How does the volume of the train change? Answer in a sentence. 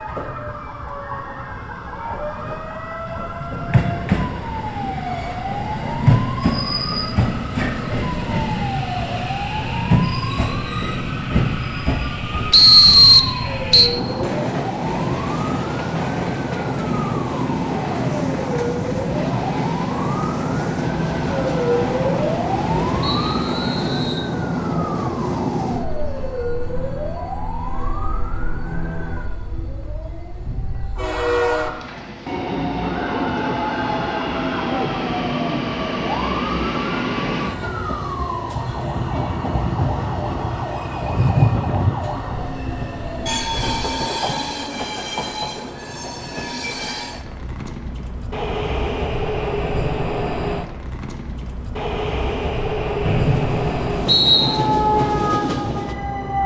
The loudness of the train stays about the same.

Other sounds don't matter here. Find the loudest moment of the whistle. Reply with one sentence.
The volume of the whistle peaks at 13 seconds.